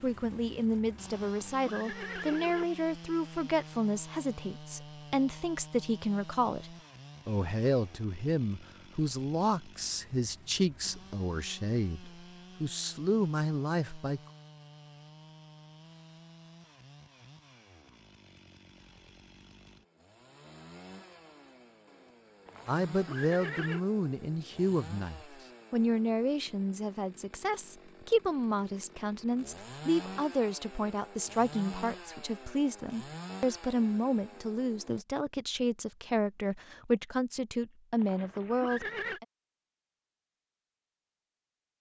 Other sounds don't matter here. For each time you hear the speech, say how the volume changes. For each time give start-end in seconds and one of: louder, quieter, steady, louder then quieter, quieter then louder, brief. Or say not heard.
0.0-14.2 steady
22.6-39.2 steady.